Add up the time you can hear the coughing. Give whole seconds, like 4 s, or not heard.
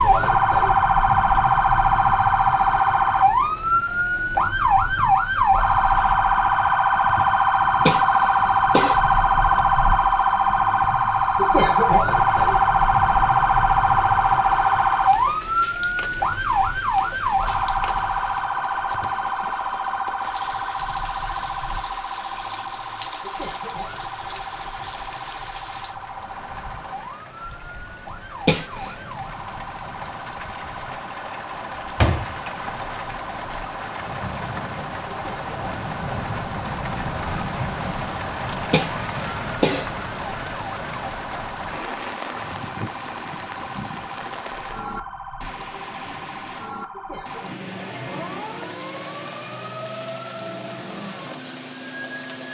4 s.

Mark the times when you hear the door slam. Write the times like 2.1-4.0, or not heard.
31.9-32.4.